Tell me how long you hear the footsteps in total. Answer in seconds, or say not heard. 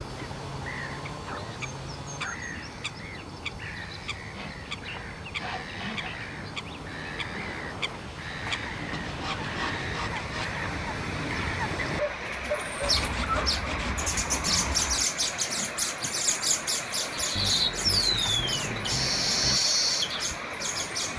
not heard.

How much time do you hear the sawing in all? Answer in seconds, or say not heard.
10 s.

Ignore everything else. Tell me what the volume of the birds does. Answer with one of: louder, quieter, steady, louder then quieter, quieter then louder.
louder.